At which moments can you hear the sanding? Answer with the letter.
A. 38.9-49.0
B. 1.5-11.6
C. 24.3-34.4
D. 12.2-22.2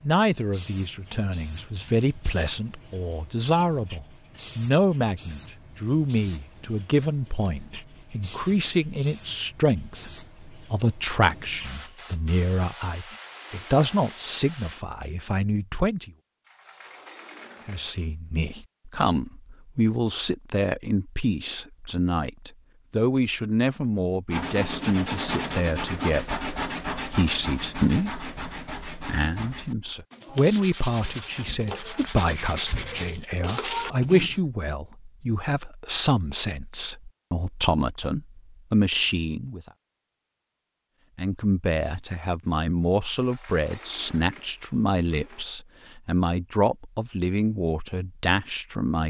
C.